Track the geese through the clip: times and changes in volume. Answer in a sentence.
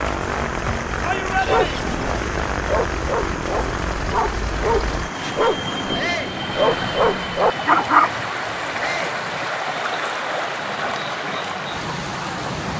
The geese can't be heard in this clip.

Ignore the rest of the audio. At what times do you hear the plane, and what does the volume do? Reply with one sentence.
The plane can be heard from 0.0 to 12.7 s, getting quieter.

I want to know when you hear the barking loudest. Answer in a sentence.
The volume of the barking peaks at 8 seconds.